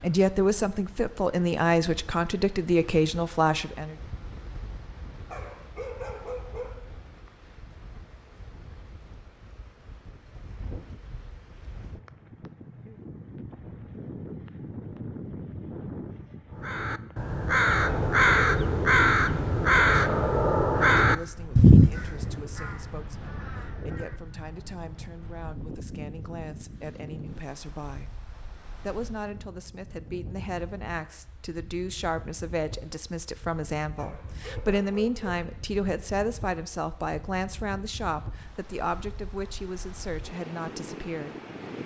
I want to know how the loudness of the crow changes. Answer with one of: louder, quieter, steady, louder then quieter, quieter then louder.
quieter.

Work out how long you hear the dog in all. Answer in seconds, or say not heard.
3 s.